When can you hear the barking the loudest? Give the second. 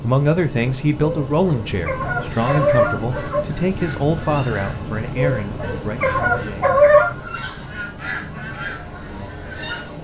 7 s.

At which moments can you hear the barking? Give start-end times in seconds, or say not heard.
1.2-3.5, 5.2-7.2.